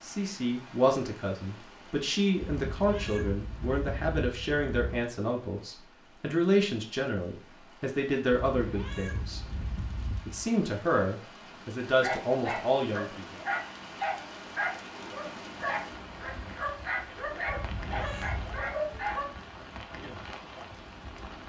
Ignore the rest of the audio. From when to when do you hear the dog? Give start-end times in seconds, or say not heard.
11.9-19.2.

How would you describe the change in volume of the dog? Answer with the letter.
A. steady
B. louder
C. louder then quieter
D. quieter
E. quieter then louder
A.